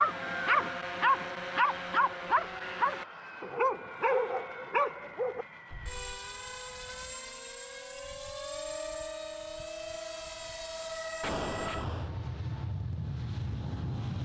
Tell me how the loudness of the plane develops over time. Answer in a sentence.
The volume of the plane goes up.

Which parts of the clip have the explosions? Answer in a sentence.
You can hear the explosions from 11.2 to 12.1 s.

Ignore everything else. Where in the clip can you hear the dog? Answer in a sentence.
You can hear the dog from 0.0 to 6.2 s.